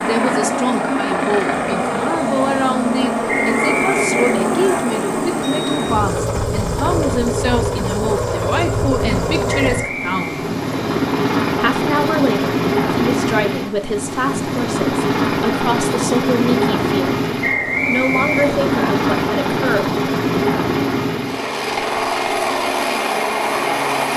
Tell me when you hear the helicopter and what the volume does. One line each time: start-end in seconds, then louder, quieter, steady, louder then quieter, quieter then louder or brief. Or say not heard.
0.0-24.1 steady.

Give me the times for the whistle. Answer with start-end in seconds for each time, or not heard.
3.2-4.8, 9.7-10.4, 17.4-18.9.